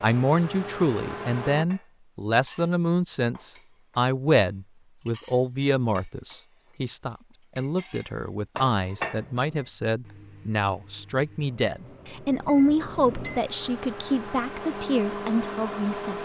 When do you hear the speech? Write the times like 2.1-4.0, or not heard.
0.0-16.2.